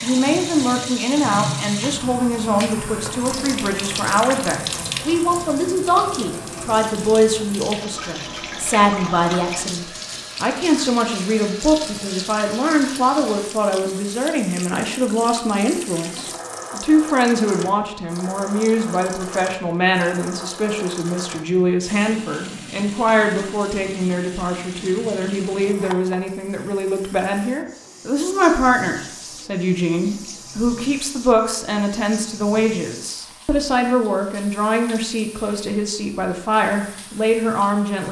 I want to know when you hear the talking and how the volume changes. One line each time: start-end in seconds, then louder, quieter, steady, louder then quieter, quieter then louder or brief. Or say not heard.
0.0-38.0 steady.